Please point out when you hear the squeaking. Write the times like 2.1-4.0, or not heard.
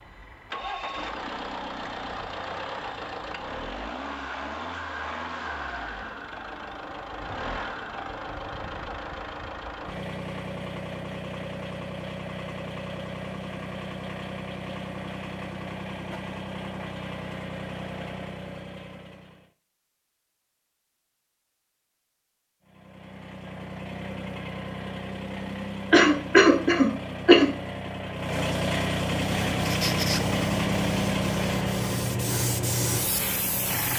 29.6-30.2.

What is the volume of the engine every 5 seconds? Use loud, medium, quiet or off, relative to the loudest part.
medium, medium, medium, medium, medium, loud, loud.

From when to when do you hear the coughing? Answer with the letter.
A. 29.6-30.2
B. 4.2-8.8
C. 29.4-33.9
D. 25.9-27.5
D.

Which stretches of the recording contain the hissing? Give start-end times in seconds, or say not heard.
29.4-33.9.